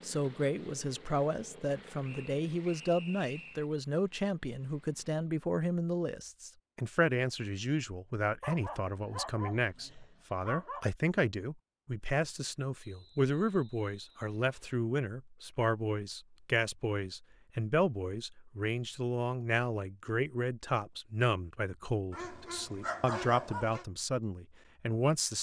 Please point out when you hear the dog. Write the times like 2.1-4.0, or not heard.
8.4-10.8, 22.1-23.9.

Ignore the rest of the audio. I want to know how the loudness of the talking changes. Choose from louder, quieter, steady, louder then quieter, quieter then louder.
steady.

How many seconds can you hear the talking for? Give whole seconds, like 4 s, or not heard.
25 s.